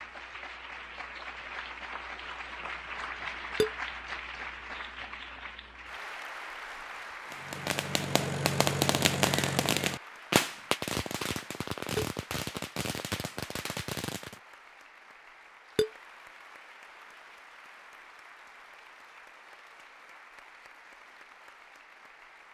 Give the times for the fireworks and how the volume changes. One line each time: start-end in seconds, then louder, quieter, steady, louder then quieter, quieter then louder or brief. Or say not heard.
7.3-14.4 quieter.